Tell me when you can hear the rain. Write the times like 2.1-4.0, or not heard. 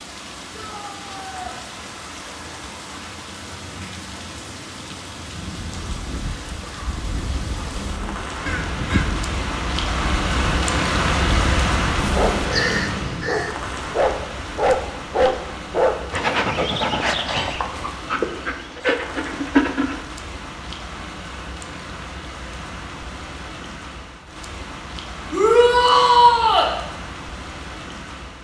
0.0-28.3.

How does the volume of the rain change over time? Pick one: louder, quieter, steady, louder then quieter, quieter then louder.
louder then quieter.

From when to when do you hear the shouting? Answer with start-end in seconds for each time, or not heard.
0.5-1.6, 25.3-26.7.